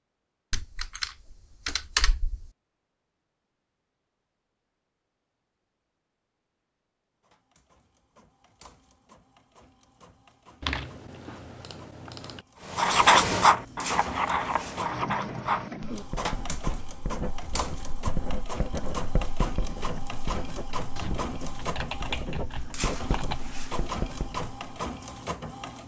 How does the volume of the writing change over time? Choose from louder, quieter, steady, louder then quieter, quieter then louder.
quieter.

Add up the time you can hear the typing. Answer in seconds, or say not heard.
6 s.